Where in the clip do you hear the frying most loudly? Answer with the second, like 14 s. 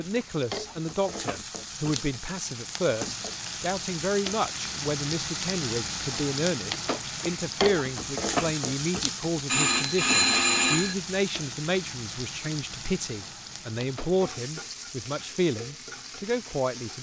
8 s.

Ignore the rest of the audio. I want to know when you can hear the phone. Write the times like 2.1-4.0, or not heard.
9.4-10.9.